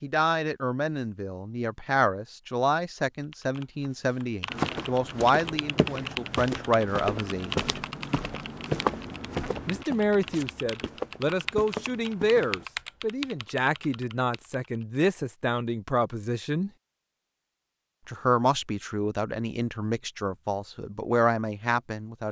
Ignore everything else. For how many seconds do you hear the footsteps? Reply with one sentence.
You can hear the footsteps for 8 seconds altogether.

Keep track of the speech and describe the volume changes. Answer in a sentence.
The volume of the speech stays about the same.